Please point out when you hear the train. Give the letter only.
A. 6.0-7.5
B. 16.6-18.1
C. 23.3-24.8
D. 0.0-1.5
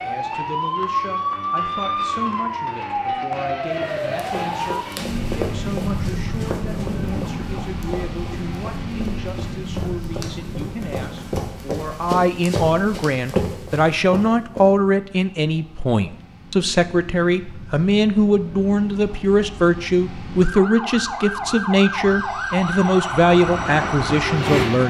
C.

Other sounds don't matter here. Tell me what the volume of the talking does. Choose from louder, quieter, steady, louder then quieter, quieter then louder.
louder.